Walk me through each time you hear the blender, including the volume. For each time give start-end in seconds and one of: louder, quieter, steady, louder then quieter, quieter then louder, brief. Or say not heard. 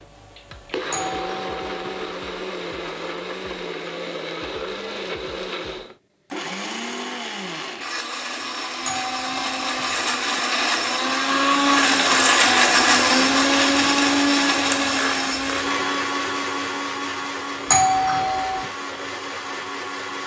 0.0-20.2 louder then quieter.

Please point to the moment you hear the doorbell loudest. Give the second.
18 s.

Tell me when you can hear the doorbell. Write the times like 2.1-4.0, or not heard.
0.9-2.1, 8.8-10.0, 17.7-18.7.